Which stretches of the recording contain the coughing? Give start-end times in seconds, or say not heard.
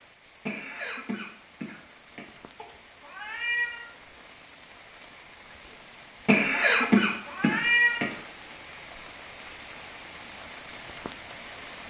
0.5-2.3, 6.2-8.2.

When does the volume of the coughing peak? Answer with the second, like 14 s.
7 s.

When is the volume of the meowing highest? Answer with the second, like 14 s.
8 s.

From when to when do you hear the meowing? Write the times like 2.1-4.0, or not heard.
2.5-3.9, 6.8-8.0.